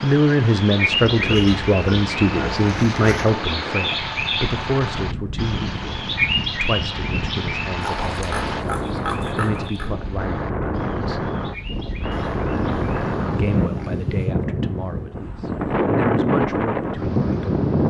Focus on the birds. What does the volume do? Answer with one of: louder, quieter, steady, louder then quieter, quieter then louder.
quieter.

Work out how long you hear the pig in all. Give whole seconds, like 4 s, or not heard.
7 s.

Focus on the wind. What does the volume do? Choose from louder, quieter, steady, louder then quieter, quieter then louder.
louder.